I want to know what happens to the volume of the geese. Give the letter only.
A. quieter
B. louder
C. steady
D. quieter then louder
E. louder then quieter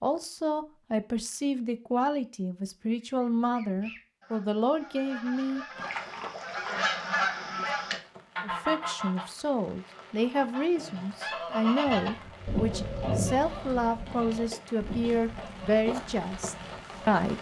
E.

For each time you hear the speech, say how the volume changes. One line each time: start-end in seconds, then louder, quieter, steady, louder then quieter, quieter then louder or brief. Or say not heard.
0.0-5.7 steady
8.4-17.3 steady.